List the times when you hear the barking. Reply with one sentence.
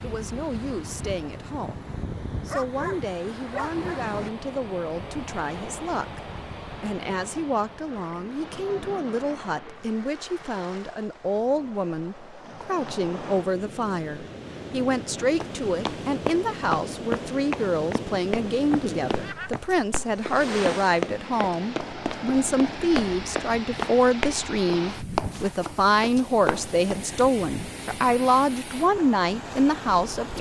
You can hear the barking from 2.5 to 4.0 s.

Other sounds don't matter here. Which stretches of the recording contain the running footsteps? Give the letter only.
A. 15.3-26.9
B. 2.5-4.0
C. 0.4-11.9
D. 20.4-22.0
A.